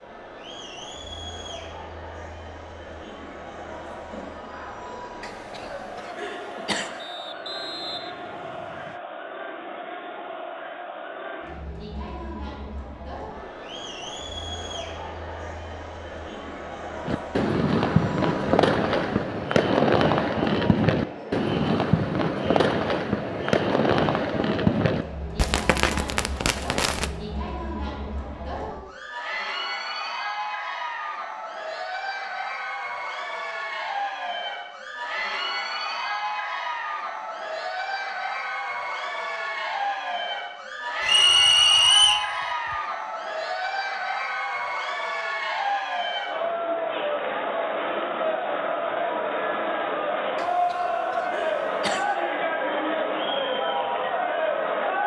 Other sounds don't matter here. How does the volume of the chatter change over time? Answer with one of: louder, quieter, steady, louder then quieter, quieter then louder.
louder.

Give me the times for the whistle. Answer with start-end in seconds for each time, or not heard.
7.0-9.0, 41.0-42.3.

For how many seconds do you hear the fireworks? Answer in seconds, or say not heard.
10 s.